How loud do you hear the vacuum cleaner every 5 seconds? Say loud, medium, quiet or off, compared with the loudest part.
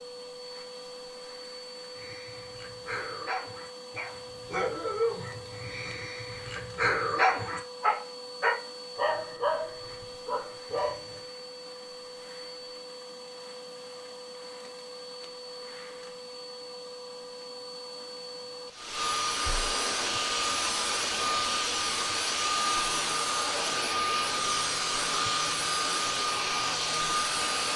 quiet, quiet, quiet, medium, loud, loud.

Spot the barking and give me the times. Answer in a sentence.
You can hear the barking from 1.9 to 11.2 s.